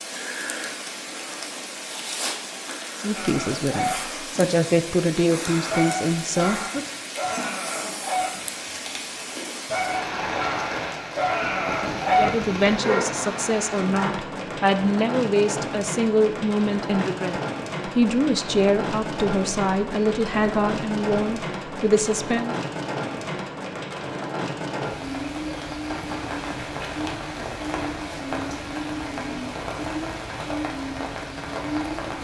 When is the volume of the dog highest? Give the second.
12 s.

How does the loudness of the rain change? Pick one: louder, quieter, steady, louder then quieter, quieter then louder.
steady.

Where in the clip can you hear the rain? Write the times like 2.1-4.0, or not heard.
0.0-32.1.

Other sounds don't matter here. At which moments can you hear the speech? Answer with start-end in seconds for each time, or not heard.
3.0-6.8, 12.2-22.6.